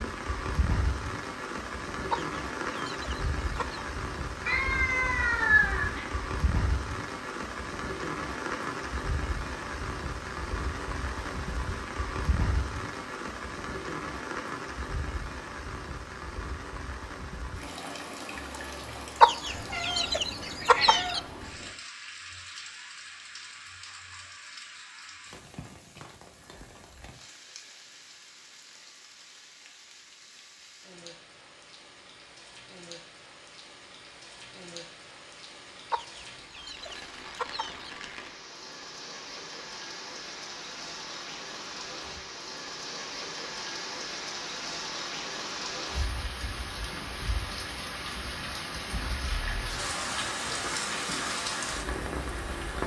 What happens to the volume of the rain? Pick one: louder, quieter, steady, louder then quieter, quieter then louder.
quieter then louder.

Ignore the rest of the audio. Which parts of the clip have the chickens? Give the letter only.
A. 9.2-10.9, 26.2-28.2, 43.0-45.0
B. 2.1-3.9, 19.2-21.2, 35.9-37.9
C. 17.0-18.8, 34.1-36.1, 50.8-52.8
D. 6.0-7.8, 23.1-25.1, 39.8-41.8
B.